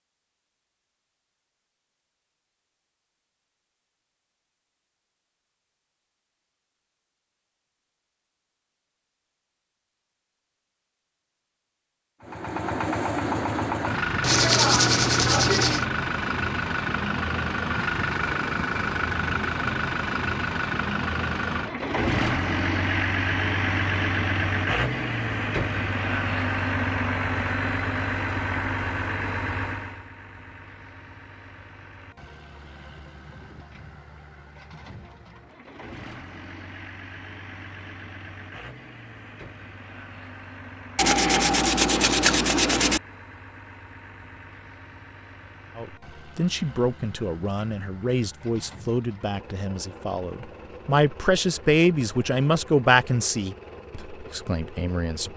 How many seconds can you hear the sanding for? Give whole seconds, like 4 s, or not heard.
4 s.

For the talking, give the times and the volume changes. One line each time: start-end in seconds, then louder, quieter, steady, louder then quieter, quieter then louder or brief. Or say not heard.
45.8-55.3 louder then quieter.